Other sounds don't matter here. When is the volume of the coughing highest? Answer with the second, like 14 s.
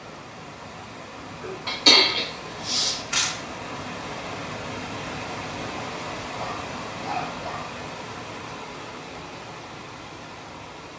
2 s.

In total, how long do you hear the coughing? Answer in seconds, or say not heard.
2 s.